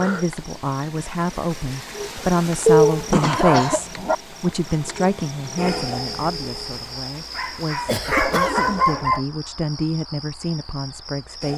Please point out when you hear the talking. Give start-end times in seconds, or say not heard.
0.0-11.5.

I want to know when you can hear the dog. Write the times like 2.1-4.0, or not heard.
2.6-4.2, 7.3-9.2.